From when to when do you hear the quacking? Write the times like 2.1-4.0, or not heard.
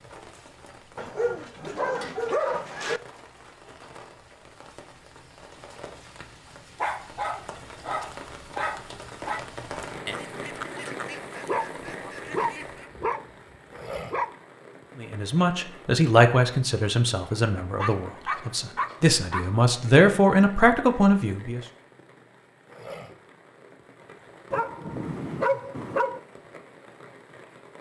10.1-12.9.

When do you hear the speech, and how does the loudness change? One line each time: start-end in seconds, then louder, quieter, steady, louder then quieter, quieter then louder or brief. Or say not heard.
14.9-21.6 quieter then louder.